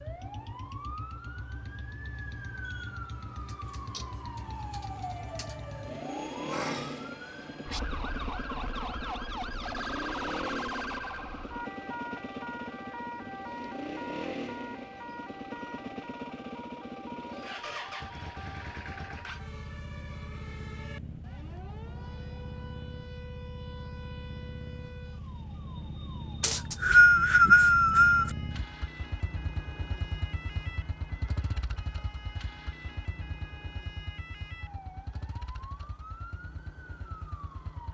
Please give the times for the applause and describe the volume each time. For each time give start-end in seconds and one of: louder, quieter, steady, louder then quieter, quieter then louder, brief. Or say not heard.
not heard.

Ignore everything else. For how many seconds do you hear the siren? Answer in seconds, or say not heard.
38 s.